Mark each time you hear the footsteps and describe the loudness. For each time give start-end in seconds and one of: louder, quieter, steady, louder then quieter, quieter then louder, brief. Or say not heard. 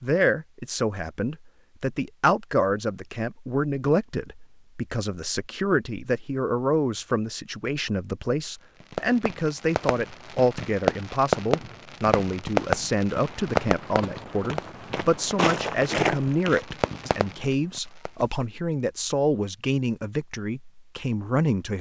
13.2-18.4 louder then quieter.